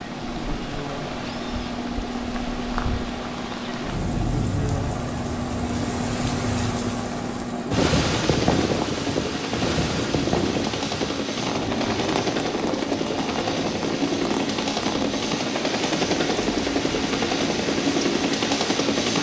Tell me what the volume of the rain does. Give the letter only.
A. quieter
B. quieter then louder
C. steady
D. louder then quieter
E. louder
D.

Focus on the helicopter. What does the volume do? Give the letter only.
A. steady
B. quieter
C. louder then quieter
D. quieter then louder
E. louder
E.